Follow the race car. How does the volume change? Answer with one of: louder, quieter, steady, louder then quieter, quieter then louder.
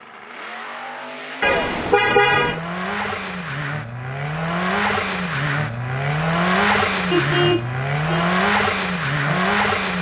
louder.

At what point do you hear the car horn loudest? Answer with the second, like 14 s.
2 s.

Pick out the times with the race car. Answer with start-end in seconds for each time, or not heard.
0.0-9.9.